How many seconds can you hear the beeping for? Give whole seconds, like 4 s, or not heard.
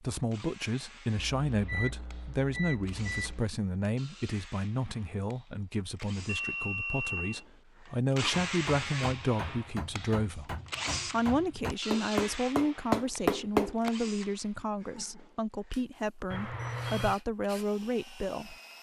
4 s.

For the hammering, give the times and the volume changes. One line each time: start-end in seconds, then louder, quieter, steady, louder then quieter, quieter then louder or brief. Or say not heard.
8.3-13.9 louder.